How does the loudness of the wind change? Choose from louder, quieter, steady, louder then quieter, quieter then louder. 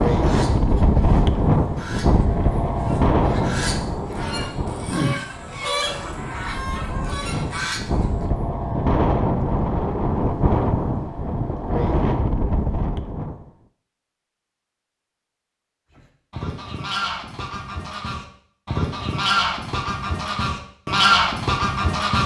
quieter then louder.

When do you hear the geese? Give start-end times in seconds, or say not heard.
0.0-8.2, 15.9-22.2.